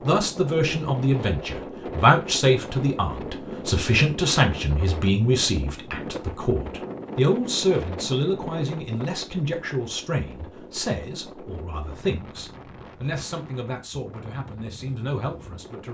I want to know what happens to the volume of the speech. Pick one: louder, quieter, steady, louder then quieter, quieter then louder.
quieter.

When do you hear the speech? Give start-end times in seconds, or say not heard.
0.1-15.9.